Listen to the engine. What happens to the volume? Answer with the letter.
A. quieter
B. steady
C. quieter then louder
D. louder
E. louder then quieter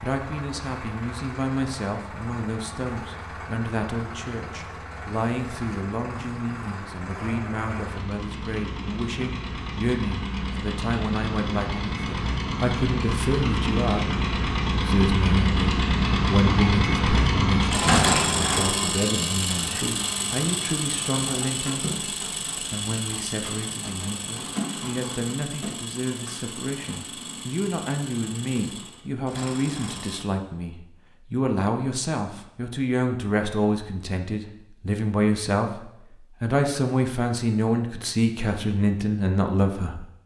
E.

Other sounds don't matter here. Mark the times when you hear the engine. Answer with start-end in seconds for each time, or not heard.
0.0-30.3.